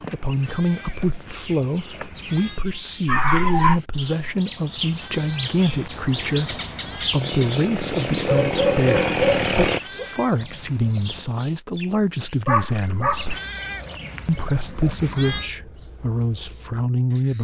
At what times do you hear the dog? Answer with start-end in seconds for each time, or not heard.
3.0-3.8, 8.2-10.1, 12.4-13.3.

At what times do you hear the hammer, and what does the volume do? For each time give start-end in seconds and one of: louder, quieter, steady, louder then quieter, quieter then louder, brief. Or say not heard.
not heard.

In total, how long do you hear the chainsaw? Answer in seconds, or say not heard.
3 s.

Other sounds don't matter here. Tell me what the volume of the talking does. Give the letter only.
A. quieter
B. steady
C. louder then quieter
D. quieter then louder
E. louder
B.